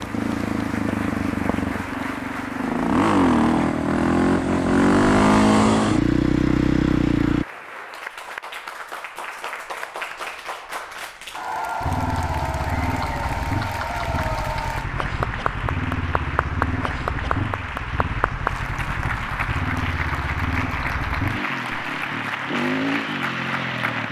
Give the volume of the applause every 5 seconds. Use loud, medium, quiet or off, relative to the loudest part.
medium, medium, loud, loud, loud.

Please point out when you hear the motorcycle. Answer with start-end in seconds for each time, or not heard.
0.0-7.5, 11.8-24.0.